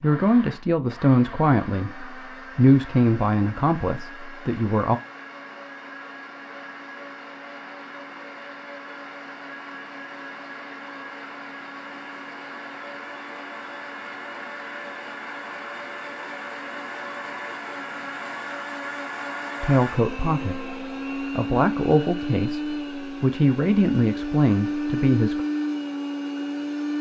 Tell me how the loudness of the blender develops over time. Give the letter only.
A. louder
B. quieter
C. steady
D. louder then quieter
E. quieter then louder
A.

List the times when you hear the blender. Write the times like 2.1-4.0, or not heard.
0.0-26.9.